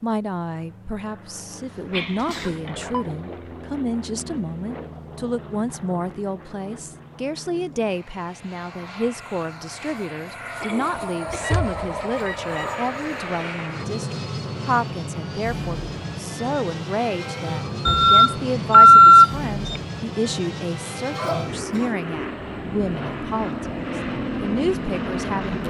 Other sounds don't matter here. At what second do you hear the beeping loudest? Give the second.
19 s.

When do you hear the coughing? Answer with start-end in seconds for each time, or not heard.
1.6-2.7, 10.6-11.6, 21.1-21.9.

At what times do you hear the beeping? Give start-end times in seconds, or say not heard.
1.9-3.0, 11.3-12.7, 17.9-19.8.